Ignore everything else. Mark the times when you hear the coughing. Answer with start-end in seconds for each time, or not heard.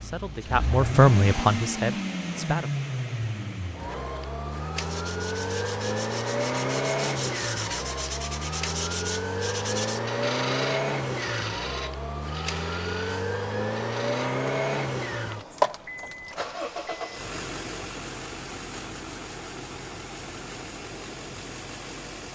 not heard.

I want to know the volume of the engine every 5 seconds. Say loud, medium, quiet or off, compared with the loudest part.
loud, loud, loud, loud, medium.